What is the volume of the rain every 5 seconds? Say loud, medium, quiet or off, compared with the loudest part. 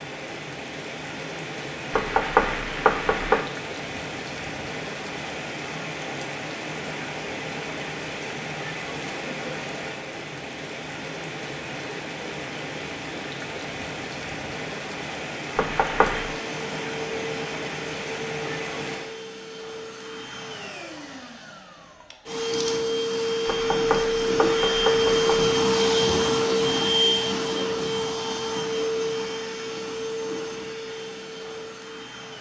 loud, loud, loud, loud, off, off, off.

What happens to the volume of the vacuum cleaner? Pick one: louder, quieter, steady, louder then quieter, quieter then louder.
louder then quieter.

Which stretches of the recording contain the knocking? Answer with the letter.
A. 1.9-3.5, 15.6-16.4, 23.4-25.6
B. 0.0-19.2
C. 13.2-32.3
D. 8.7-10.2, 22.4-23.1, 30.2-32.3
A.